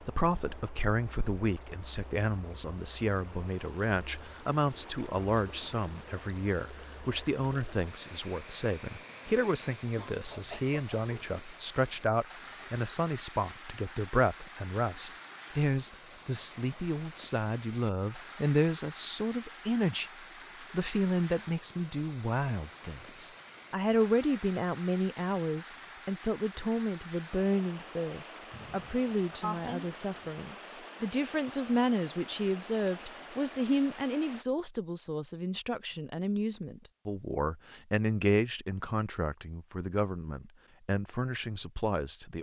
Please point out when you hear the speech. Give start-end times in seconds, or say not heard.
0.1-20.1, 20.7-42.3.